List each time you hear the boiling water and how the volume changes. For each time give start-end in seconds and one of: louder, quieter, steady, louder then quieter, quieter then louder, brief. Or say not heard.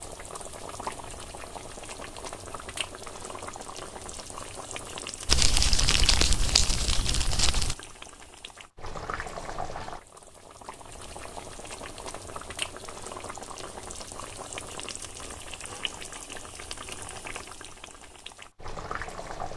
0.0-19.5 steady.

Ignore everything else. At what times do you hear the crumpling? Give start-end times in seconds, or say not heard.
5.2-7.8.